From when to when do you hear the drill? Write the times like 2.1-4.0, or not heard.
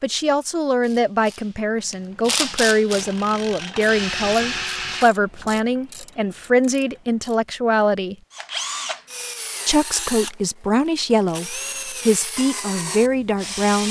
2.7-5.7, 8.3-13.8.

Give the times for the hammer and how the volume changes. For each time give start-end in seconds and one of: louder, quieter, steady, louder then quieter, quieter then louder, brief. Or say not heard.
not heard.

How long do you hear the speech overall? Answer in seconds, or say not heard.
12 s.